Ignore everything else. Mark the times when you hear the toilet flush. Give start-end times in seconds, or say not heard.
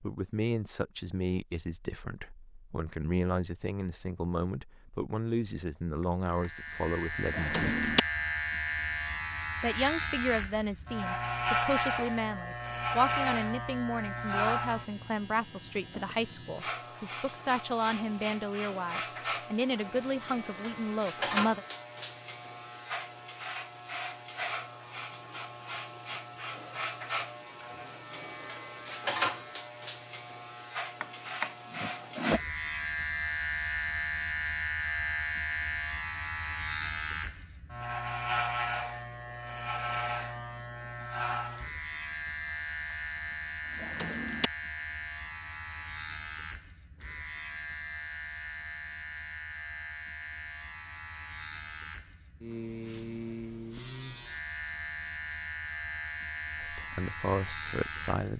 not heard.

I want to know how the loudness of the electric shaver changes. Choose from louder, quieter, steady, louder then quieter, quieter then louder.
quieter.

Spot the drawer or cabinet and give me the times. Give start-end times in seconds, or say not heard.
7.3-8.0, 31.0-32.4, 43.8-44.5.